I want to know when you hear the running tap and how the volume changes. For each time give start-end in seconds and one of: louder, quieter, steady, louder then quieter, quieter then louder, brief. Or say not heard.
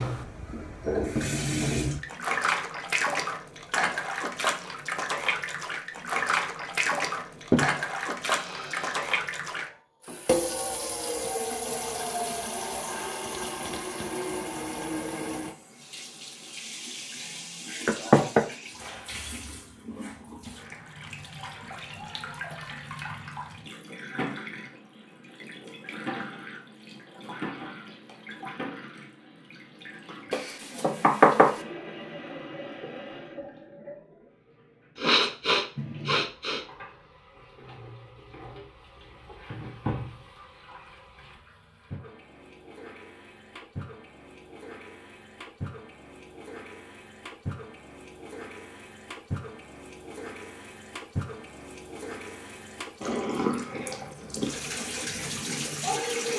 0.0-56.3 quieter then louder.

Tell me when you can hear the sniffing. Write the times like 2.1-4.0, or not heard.
7.5-9.1, 35.0-36.6.